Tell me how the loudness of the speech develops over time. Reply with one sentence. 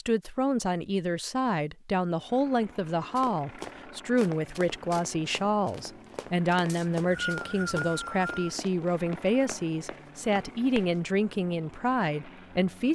The volume of the speech stays about the same.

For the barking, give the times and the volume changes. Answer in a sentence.
You can't hear the barking here.